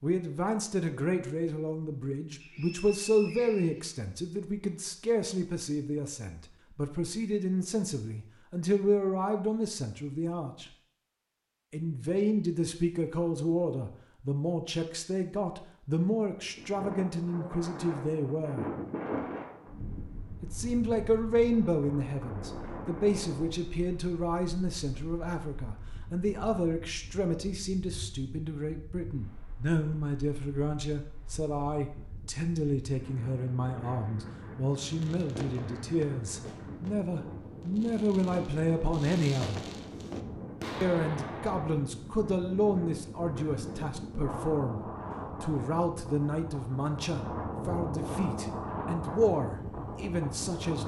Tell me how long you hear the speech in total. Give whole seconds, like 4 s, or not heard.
47 s.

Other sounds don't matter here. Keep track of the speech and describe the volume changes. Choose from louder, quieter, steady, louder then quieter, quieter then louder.
steady.